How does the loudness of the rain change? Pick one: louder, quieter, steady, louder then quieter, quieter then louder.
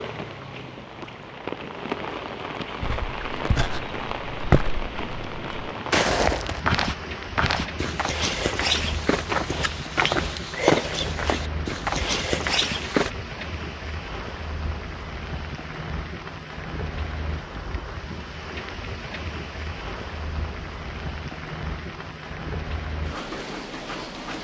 steady.